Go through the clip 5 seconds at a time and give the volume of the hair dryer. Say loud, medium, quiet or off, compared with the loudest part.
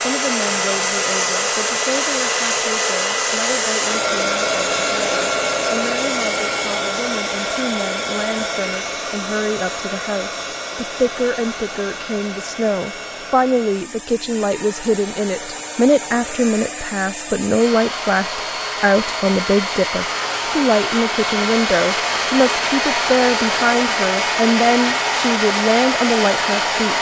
loud, loud, medium, medium, loud, loud.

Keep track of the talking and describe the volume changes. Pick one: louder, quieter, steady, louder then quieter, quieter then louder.
louder.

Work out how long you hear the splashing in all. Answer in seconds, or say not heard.
not heard.